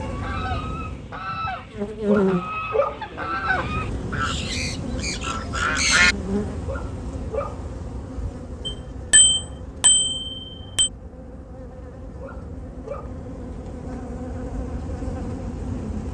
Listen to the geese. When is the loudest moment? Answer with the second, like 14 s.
6 s.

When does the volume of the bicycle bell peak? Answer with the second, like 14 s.
9 s.